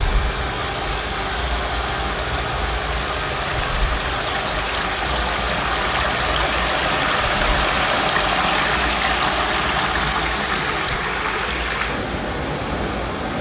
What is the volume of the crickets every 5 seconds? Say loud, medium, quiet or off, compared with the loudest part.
loud, loud, medium.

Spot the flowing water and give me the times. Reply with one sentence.
You can hear the flowing water from 0.0 to 13.3 s.